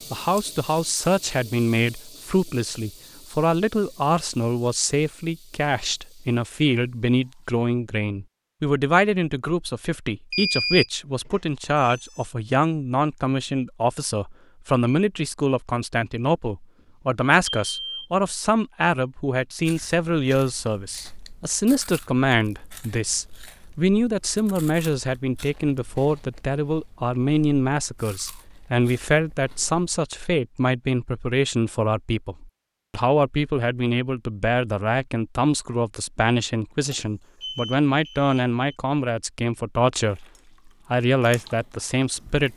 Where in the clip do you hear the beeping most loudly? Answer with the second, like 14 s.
11 s.